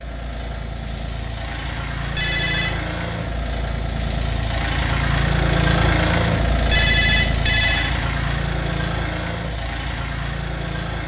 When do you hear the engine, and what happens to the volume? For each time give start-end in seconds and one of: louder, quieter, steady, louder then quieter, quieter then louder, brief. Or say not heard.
0.0-11.0 louder then quieter.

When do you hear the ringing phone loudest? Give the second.
7 s.